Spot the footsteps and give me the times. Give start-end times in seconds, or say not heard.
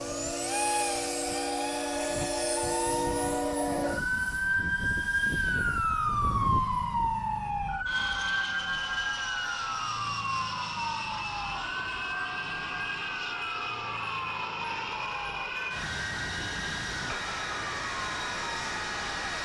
not heard.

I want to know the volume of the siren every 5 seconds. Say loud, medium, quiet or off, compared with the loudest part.
loud, loud, medium, quiet.